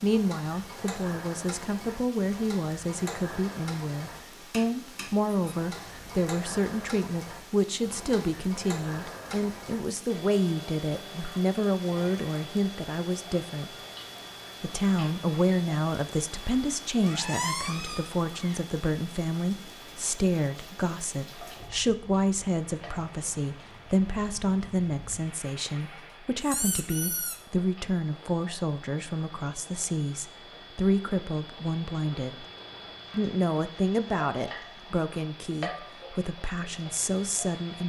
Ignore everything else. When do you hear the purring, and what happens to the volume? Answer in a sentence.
You can't hear the purring here.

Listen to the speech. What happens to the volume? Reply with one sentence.
The loudness of the speech stays about the same.